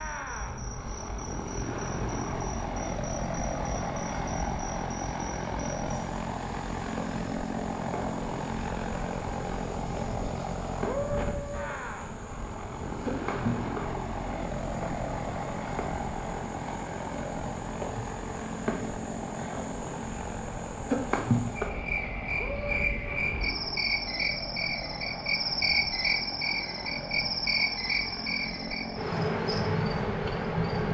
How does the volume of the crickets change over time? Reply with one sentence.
The loudness of the crickets goes up.